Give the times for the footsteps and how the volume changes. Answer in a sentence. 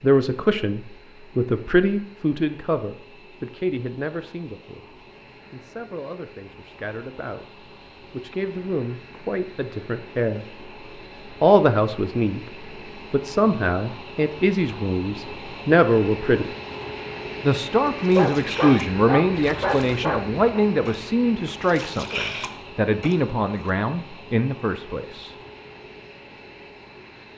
The footsteps can't be heard in this clip.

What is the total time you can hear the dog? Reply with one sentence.
You can hear the dog for 2 seconds altogether.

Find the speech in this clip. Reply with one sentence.
The speech can be heard from 0.0 to 10.6 s, from 11.4 to 16.5 s and from 17.4 to 25.4 s.